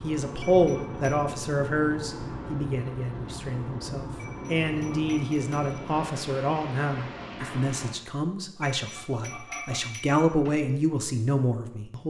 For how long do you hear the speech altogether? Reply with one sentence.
You can hear the speech for 12 seconds altogether.